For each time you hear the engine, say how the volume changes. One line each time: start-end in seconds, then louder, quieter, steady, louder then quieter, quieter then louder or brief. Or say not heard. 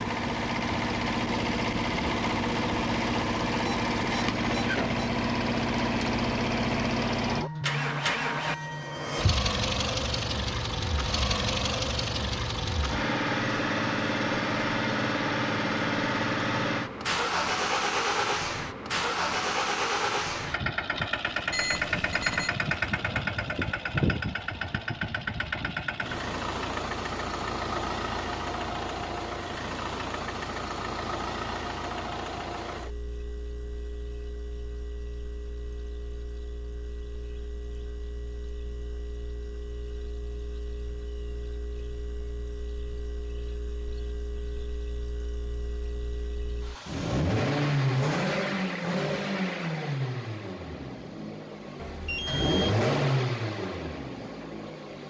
0.0-55.0 quieter then louder.